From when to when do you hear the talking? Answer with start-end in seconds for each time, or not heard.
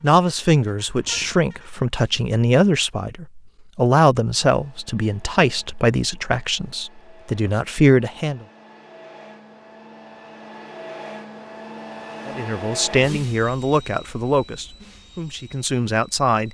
0.0-8.4, 12.2-16.4.